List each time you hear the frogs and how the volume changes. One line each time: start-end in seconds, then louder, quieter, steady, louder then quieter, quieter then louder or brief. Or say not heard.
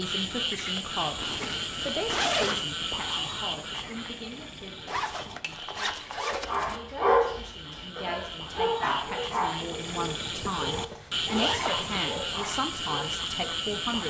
0.0-14.0 quieter then louder.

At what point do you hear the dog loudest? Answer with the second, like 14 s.
7 s.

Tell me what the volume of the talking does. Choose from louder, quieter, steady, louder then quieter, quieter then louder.
quieter then louder.